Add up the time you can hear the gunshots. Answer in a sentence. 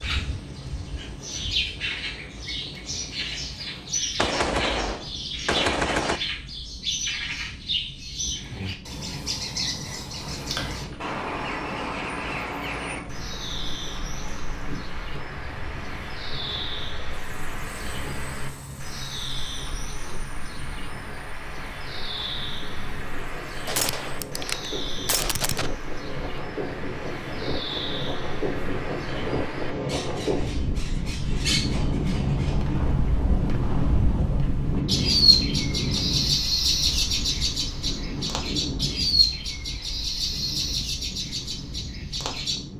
The gunshots can be heard for 7 seconds in total.